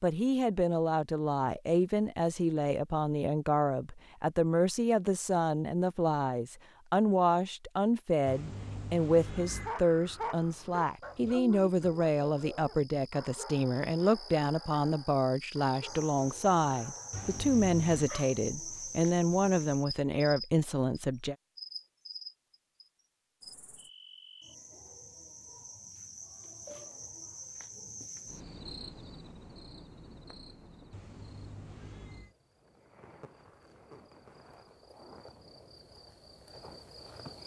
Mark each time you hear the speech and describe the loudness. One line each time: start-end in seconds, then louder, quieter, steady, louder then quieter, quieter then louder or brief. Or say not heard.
0.0-21.4 steady.